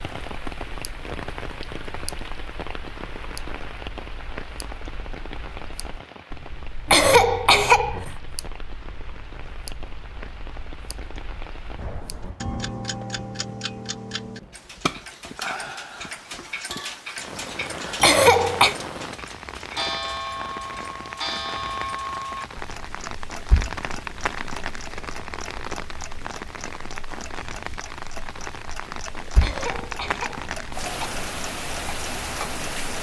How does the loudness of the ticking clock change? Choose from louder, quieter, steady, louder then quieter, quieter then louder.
louder then quieter.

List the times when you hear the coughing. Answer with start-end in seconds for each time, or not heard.
6.8-8.1, 18.0-18.8, 29.4-31.1.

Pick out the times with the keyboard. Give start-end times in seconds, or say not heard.
not heard.